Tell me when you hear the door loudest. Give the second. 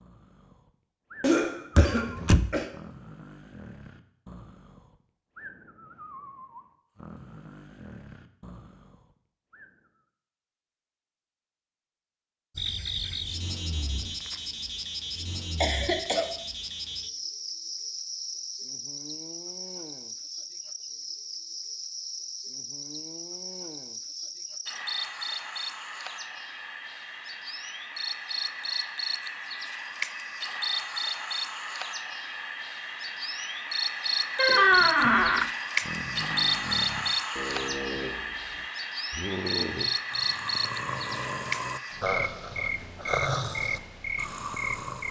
35 s.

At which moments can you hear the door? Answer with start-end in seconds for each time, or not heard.
1.8-2.5, 34.4-35.5.